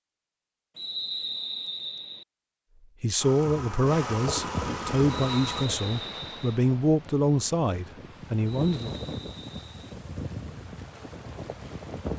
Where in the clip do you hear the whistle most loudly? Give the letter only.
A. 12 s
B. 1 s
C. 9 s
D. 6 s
B.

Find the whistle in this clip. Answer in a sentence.
You can hear the whistle from 0.8 to 2.2 s, from 5.1 to 6.6 s and from 8.4 to 9.9 s.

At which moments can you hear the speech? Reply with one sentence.
You can hear the speech from 3.0 to 8.9 s.